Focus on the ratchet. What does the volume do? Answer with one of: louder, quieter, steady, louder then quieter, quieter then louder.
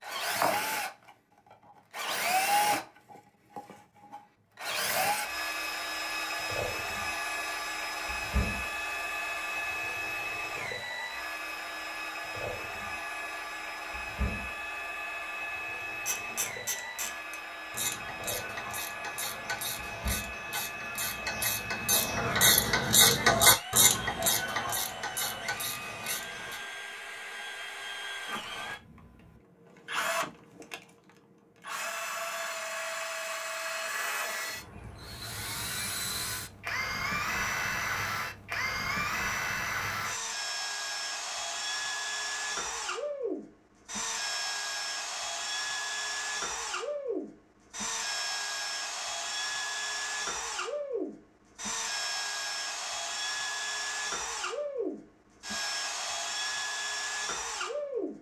louder then quieter.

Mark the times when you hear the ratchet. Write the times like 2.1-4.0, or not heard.
16.1-26.6.